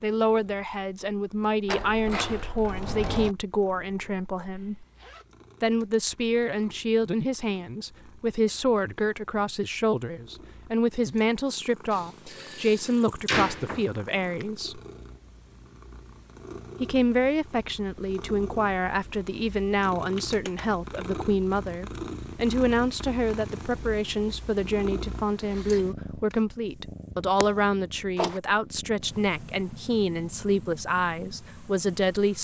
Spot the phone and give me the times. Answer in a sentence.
The phone can't be heard in this clip.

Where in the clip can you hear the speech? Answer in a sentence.
You can hear the speech from 0.0 to 4.8 s, from 5.6 to 14.8 s and from 16.8 to 32.3 s.